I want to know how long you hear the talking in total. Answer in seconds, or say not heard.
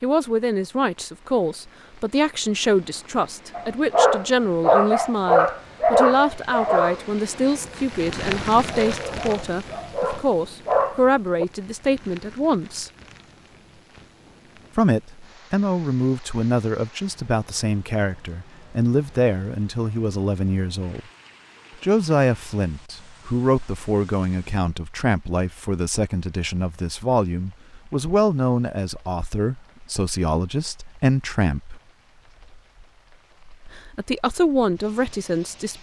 31 s.